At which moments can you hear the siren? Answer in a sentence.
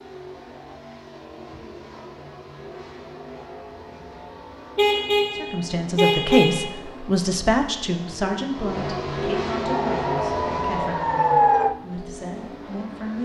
You can hear the siren from 9.6 to 11.8 s.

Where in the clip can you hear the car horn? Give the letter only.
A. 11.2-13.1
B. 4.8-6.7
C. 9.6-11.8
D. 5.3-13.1
B.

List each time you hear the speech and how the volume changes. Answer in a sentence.
You can hear the speech from 5.3 to 13.1 s, getting quieter.